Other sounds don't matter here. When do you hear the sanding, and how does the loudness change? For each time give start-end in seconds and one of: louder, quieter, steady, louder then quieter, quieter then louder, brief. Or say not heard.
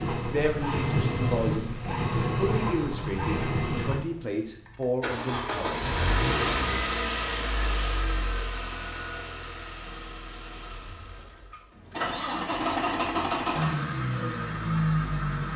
not heard.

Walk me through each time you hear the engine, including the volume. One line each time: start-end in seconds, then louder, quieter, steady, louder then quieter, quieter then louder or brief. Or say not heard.
0.0-15.5 quieter then louder.